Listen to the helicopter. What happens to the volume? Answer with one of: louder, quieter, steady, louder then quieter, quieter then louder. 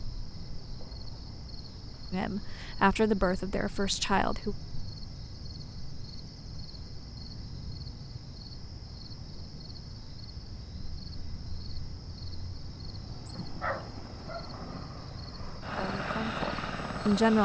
louder.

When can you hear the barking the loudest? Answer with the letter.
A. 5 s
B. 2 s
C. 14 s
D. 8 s
C.